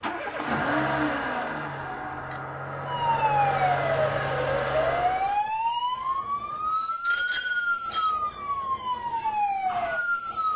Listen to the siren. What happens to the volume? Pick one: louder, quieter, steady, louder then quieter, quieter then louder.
steady.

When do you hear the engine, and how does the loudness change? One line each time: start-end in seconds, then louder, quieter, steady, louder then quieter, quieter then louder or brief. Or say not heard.
0.0-5.4 quieter then louder.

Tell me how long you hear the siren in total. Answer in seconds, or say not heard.
8 s.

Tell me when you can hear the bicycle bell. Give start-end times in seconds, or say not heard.
1.8-2.5, 7.0-8.2.